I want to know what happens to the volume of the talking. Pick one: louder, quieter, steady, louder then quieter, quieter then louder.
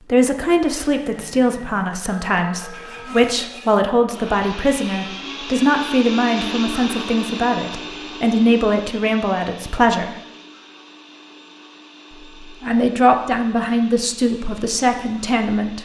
steady.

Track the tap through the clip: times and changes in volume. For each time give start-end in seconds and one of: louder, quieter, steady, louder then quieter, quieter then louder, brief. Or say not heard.
not heard.